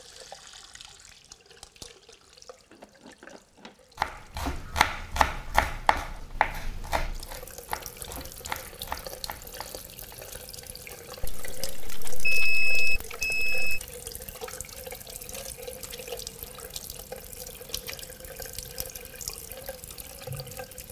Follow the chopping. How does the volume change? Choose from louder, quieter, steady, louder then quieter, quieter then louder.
quieter.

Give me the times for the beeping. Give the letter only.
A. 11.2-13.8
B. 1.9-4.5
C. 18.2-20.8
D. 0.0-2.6
A.